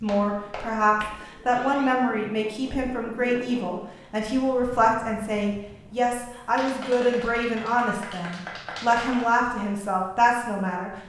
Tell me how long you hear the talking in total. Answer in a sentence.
The talking can be heard for 11 seconds in total.